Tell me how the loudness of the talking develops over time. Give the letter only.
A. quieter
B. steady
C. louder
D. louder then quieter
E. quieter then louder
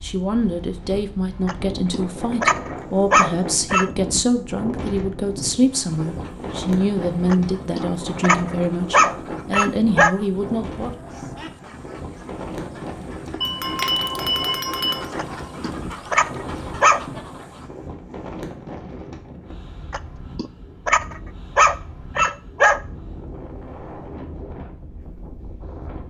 B.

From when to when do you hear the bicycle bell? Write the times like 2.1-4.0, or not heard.
13.4-15.1.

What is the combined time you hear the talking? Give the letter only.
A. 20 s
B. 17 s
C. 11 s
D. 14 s
C.